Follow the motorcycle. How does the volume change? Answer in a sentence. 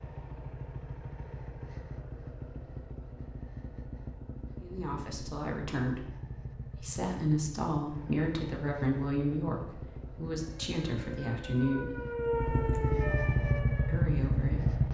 The loudness of the motorcycle goes up.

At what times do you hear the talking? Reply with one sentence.
The talking can be heard from 4.6 to 6.0 s, from 6.7 to 11.9 s and from 13.8 to 14.8 s.